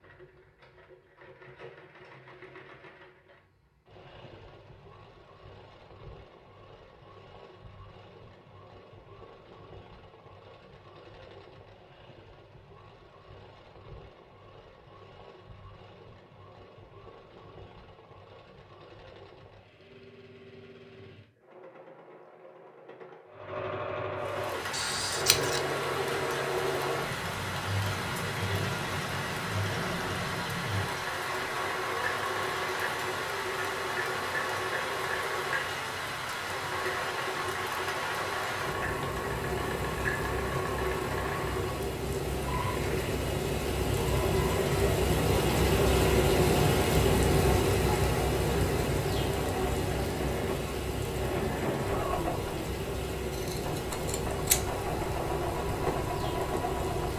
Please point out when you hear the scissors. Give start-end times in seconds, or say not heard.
24.7-25.6, 53.3-54.8.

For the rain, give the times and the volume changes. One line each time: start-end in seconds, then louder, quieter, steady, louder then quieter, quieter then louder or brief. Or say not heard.
24.1-57.1 louder then quieter.